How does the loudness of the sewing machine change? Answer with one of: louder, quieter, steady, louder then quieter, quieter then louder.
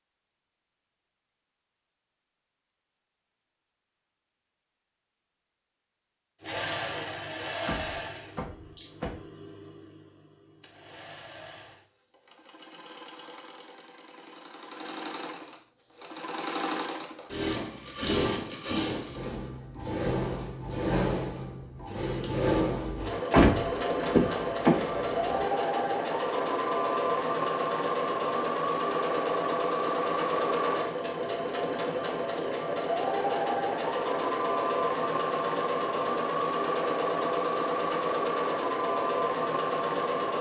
louder.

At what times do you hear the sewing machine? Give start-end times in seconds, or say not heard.
6.4-40.3.